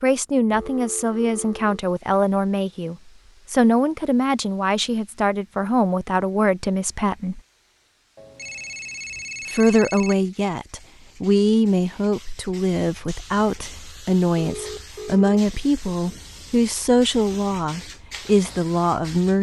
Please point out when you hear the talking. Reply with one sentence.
The talking can be heard from 0.0 to 7.4 s and from 9.5 to 19.3 s.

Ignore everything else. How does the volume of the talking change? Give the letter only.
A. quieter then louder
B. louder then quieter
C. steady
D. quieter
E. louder
C.